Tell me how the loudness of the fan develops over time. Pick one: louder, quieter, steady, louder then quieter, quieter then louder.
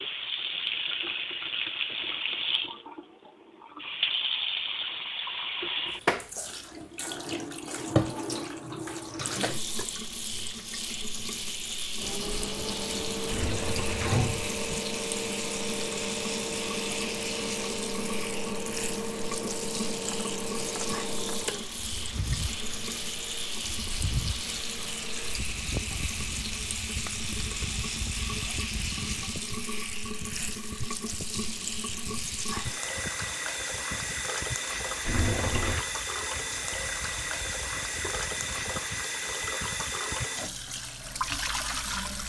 quieter.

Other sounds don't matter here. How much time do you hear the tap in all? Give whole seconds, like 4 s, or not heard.
42 s.